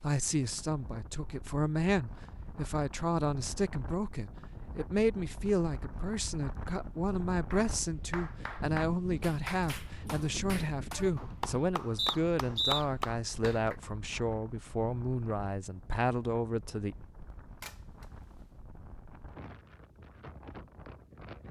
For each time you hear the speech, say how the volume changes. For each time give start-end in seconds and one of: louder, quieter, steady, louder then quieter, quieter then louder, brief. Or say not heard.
0.0-16.9 steady.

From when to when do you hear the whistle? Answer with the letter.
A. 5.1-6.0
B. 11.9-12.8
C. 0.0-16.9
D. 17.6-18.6
B.